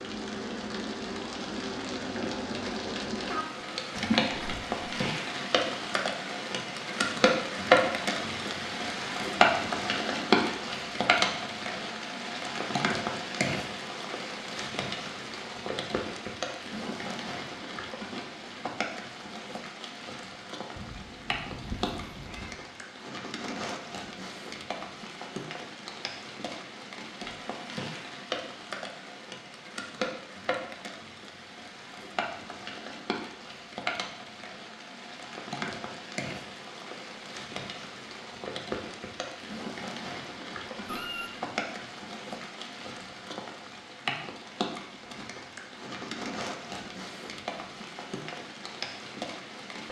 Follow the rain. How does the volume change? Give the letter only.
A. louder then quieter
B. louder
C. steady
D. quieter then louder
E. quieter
E.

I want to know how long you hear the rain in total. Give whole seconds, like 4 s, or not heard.
50 s.